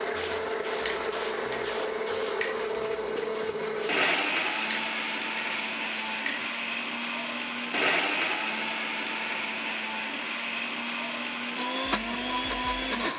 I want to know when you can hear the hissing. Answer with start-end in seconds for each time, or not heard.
0.0-6.5.